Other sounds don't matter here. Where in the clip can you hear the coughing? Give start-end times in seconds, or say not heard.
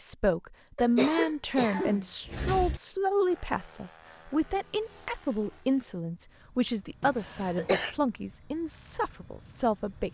0.8-2.8, 7.0-8.0.